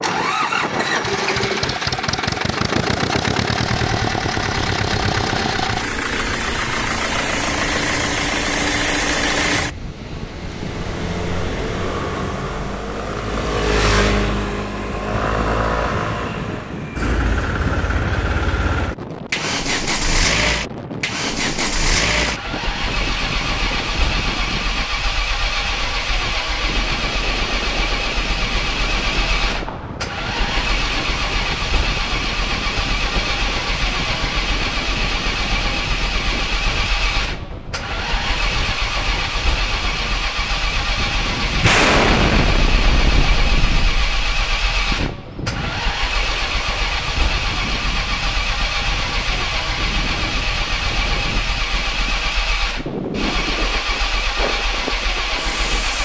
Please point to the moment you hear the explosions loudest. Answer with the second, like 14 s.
42 s.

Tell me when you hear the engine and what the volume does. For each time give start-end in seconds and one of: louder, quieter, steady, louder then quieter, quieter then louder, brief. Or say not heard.
0.0-55.9 steady.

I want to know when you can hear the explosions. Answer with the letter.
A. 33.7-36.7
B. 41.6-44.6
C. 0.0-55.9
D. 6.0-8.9
B.